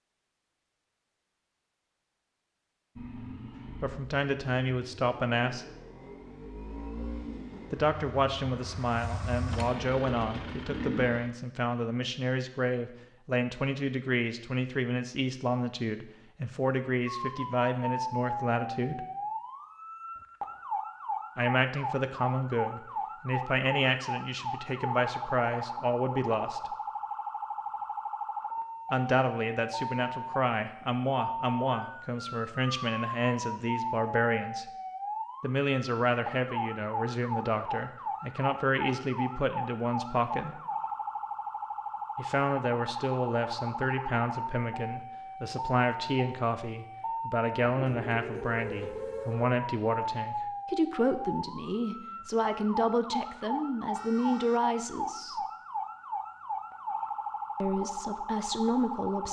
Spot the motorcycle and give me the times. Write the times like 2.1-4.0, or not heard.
3.0-11.3.